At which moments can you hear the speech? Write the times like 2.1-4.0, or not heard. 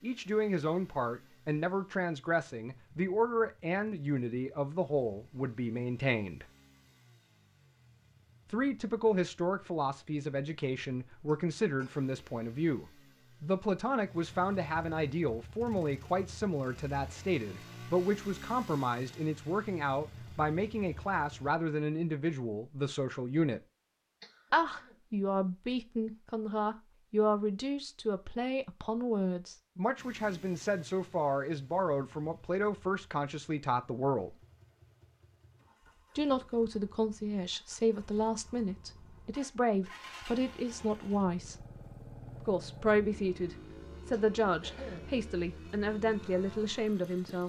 0.0-6.5, 8.5-23.6, 24.5-34.4, 36.1-41.6, 42.4-47.4.